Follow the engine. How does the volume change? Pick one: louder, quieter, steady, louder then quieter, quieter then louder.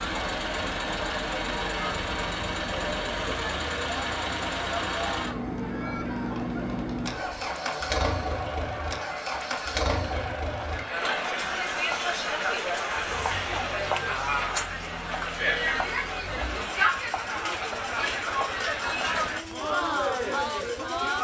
quieter.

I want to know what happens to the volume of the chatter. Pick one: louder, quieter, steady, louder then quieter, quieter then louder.
louder.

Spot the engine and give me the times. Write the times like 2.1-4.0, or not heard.
0.0-21.1.